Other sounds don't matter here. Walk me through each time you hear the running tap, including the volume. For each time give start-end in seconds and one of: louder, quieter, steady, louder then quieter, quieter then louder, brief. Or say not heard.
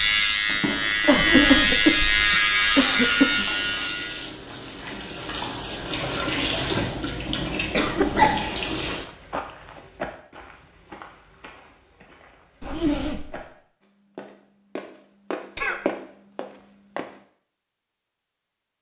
0.0-9.1 louder.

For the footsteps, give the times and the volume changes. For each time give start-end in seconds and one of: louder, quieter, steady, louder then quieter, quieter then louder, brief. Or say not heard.
8.8-13.5 quieter then louder
14.2-17.1 brief.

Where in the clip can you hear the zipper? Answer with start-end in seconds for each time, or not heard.
1.1-2.3, 7.8-8.3, 12.6-13.4.